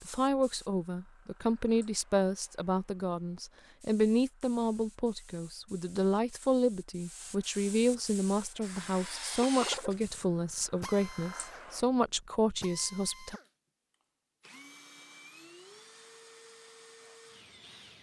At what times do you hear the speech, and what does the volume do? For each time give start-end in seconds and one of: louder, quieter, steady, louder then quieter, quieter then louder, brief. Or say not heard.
0.1-13.4 steady.